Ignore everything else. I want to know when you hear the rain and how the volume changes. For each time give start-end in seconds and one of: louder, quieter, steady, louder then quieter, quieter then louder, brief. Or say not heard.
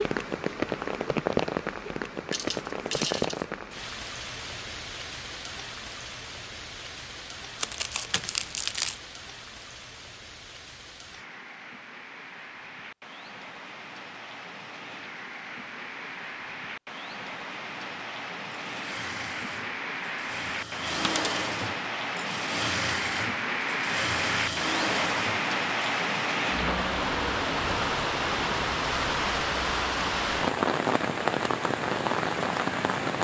0.0-33.1 quieter then louder.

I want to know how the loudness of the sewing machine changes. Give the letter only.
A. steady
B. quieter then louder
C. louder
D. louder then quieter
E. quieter
C.